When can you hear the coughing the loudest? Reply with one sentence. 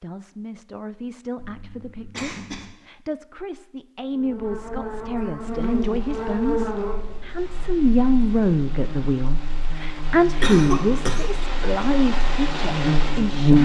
The volume of the coughing peaks at 11 seconds.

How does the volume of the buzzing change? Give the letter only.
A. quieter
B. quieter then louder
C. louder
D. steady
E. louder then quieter
B.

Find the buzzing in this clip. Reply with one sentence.
You can hear the buzzing from 4.1 to 13.6 s.